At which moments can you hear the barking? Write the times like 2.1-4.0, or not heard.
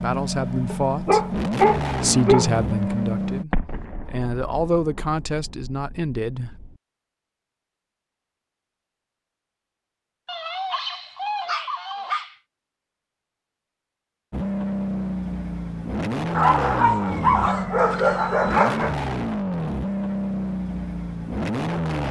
0.7-2.5, 10.2-12.3, 16.4-18.9.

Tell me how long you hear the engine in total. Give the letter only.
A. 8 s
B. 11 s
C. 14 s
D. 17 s
B.